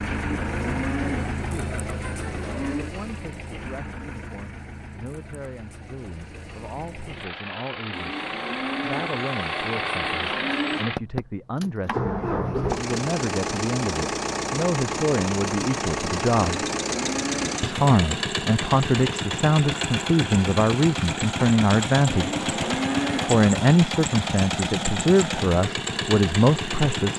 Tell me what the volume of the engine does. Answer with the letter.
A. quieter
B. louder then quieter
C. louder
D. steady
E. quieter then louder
C.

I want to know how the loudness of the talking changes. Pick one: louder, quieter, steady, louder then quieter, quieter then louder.
louder.